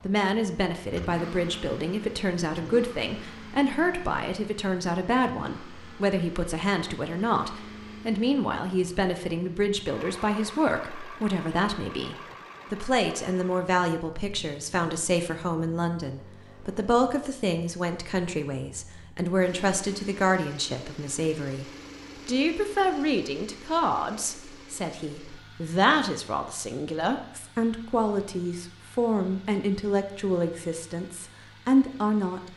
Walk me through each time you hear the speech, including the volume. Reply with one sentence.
You can hear the speech from 0.1 to 32.4 s, at a steady volume.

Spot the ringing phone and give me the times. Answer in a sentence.
The ringing phone can't be heard in this clip.